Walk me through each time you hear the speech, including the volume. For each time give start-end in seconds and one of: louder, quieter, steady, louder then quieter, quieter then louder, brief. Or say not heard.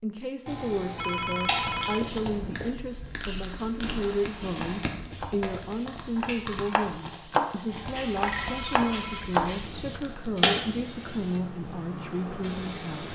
0.0-13.1 steady.